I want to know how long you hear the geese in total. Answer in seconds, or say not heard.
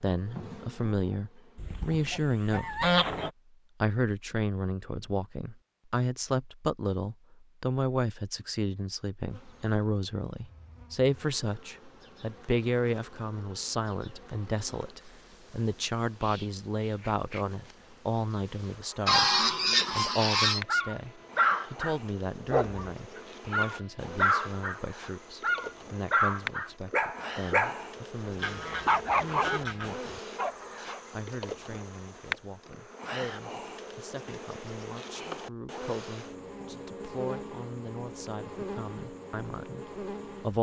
5 s.